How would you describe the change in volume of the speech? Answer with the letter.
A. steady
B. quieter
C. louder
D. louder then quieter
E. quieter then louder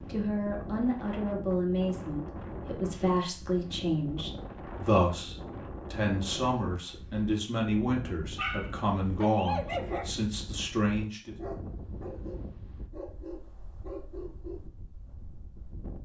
A.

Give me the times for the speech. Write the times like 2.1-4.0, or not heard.
0.1-11.3.